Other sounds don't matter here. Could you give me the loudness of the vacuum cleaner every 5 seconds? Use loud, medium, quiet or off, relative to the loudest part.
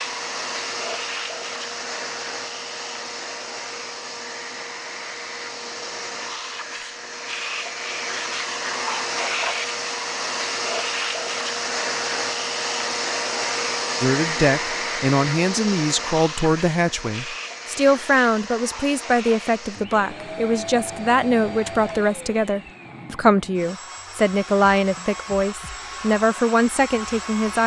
medium, loud, loud, medium, medium, medium.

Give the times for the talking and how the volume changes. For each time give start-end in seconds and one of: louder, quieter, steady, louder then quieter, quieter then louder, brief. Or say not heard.
14.0-27.6 steady.